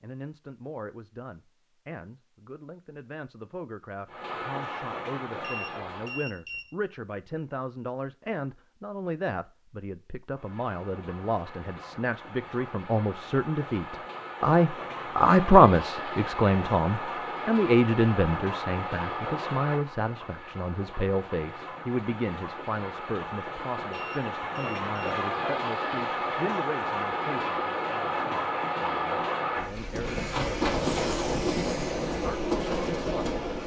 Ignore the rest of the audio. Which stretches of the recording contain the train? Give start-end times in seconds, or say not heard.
4.0-6.3, 10.3-33.6.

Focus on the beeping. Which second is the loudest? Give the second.
6 s.